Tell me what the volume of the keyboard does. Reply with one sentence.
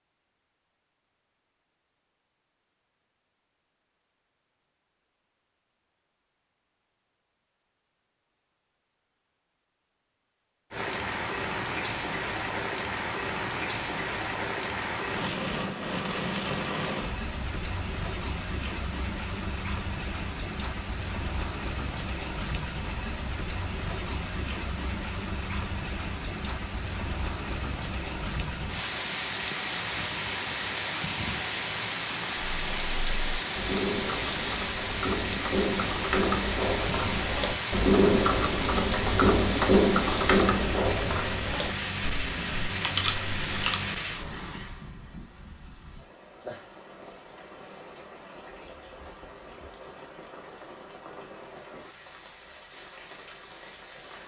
The volume of the keyboard goes up, then down.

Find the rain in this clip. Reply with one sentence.
The rain can be heard from 10.7 to 54.2 s.